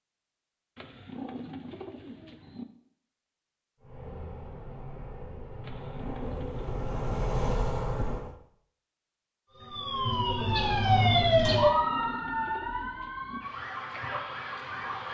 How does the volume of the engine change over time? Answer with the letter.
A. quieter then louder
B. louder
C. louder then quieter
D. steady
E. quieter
B.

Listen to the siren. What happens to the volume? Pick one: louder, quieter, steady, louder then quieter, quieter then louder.
louder then quieter.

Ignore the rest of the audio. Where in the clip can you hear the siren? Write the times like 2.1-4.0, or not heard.
9.5-15.0.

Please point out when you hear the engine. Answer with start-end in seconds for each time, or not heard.
3.8-8.3.